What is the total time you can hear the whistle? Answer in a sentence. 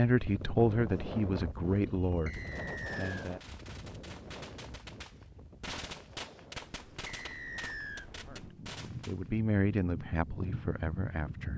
You can hear the whistle for 2 seconds altogether.